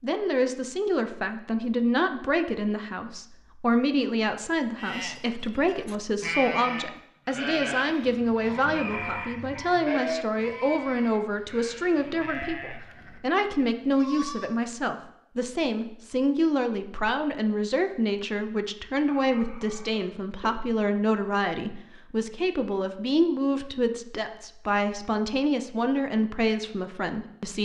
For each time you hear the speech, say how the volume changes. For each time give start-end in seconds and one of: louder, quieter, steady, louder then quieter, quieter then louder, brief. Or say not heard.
0.0-27.6 steady.